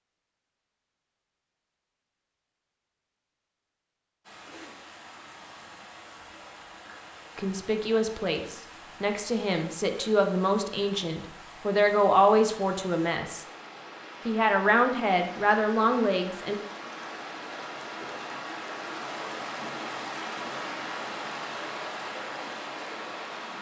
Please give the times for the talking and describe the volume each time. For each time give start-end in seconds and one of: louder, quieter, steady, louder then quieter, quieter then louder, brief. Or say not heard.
7.3-13.4 louder
14.2-16.6 brief.